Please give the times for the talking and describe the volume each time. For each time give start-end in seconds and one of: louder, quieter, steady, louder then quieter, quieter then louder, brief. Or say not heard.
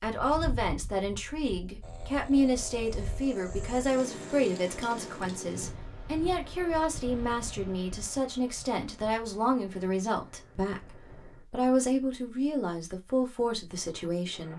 0.0-14.5 steady.